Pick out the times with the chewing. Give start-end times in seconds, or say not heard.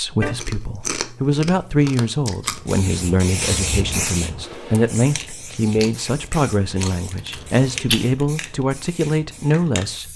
0.2-2.9, 5.8-8.2.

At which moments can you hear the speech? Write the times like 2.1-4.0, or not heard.
0.0-10.1.